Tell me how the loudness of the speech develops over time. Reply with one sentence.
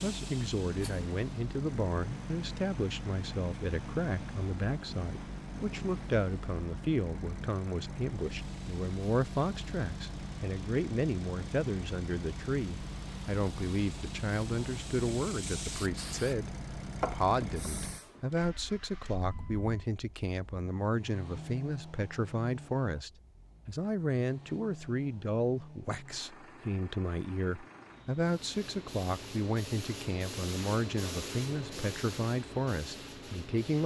The volume of the speech stays about the same.